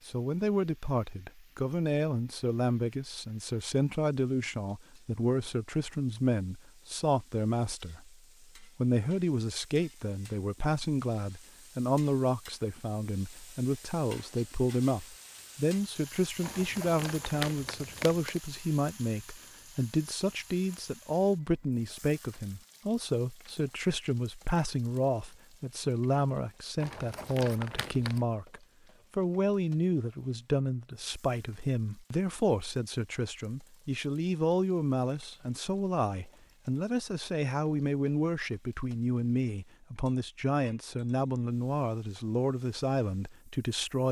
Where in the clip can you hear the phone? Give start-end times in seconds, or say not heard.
not heard.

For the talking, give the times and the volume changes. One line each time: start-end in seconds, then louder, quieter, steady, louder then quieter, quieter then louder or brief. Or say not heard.
0.1-44.0 steady.